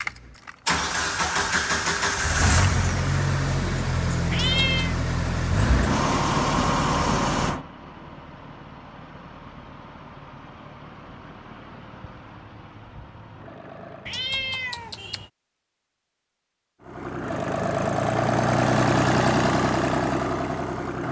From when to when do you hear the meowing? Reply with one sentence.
The meowing can be heard from 4.3 to 5.0 s and from 14.1 to 15.3 s.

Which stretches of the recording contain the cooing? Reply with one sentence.
The cooing can't be heard in this clip.